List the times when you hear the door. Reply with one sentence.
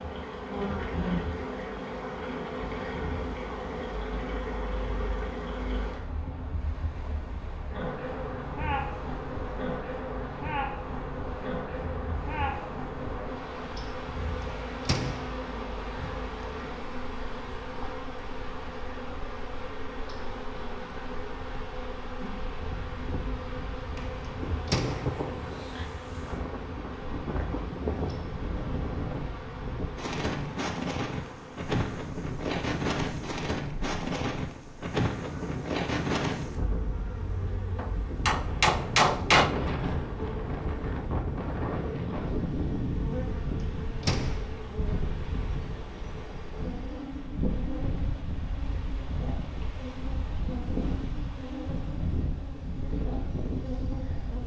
You can hear the door from 14.8 to 15.3 s, from 24.6 to 25.2 s and from 44.0 to 44.5 s.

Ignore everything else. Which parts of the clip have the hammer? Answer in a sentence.
You can hear the hammer from 37.8 to 39.5 s.